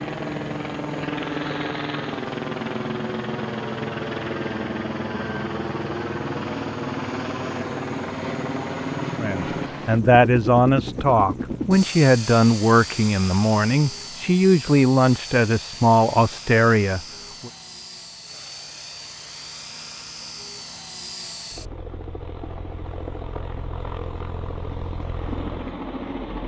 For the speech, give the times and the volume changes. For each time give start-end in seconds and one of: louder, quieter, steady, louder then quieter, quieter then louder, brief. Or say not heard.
9.2-17.5 steady.